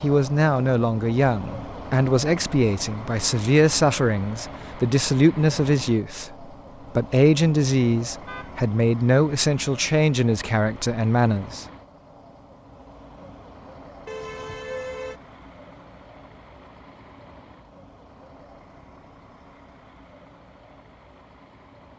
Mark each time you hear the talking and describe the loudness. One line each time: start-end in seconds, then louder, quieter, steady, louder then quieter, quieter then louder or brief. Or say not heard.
0.0-11.7 steady.